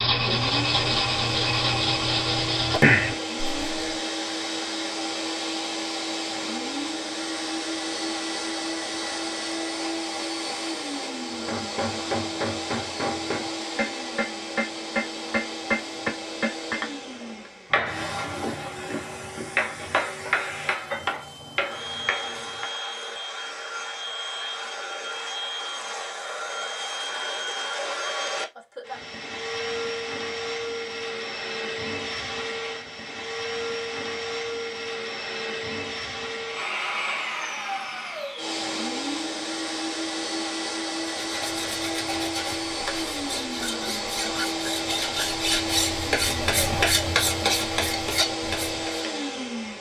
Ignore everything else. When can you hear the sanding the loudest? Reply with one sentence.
The volume of the sanding peaks at 3 seconds.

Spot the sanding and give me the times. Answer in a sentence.
You can hear the sanding from 0.0 to 4.0 s and from 41.2 to 49.0 s.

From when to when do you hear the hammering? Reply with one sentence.
The hammering can be heard from 11.4 to 22.7 s.